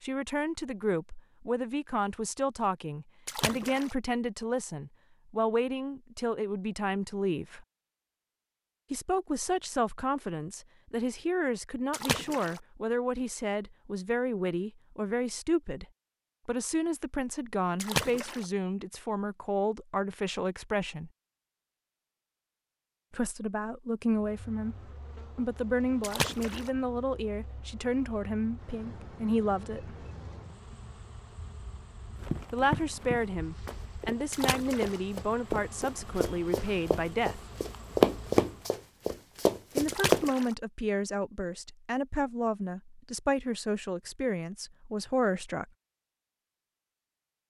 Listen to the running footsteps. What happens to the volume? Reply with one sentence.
The loudness of the running footsteps goes up, then down.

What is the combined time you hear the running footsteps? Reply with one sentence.
The running footsteps can be heard for 8 seconds in total.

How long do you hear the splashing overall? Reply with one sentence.
You can hear the splashing for 4 seconds altogether.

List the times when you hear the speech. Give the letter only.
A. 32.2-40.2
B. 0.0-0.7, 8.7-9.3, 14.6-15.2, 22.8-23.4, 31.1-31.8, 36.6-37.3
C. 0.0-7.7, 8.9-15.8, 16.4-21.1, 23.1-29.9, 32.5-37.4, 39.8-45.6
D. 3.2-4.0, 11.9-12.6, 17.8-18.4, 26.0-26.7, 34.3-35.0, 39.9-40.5
C.